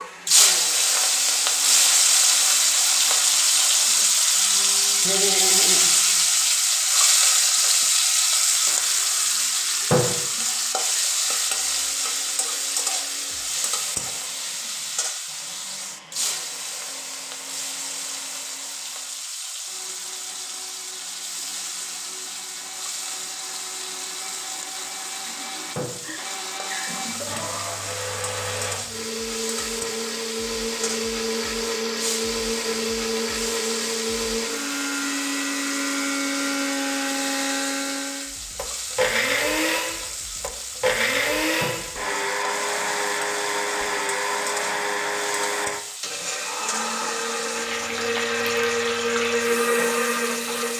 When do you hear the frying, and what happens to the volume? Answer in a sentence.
The frying can be heard from 0.0 to 50.7 s, getting quieter.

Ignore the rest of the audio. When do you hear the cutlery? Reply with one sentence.
The cutlery can't be heard in this clip.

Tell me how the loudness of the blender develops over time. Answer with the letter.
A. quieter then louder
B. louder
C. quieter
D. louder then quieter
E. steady
B.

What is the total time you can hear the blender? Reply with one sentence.
The blender can be heard for 51 seconds in total.